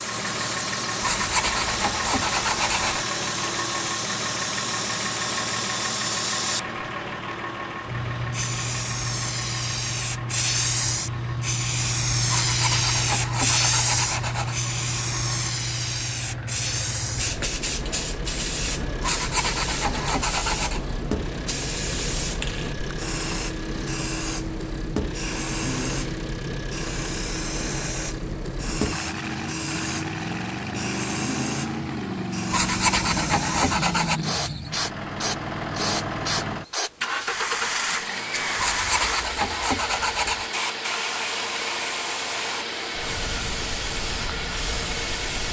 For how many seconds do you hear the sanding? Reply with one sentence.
The sanding can be heard for 10 seconds in total.